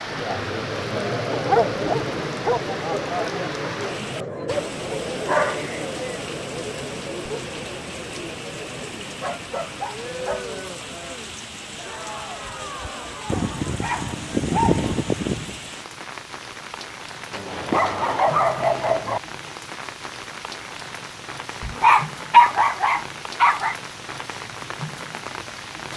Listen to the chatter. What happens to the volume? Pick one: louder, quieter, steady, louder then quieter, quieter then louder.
quieter.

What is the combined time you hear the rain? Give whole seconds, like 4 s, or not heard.
26 s.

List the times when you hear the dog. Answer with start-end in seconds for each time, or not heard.
1.3-2.6, 4.5-6.2, 9.2-10.5, 13.2-15.6, 17.3-19.2, 21.6-23.8.